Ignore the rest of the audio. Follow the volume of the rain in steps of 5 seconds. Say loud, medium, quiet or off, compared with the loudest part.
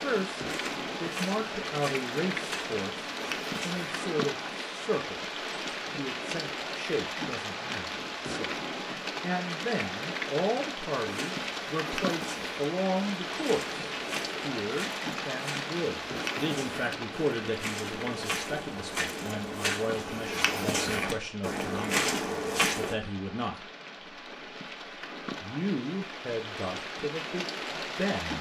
loud, loud, loud, loud, medium, loud.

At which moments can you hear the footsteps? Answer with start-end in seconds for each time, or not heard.
0.1-4.0, 11.0-22.9.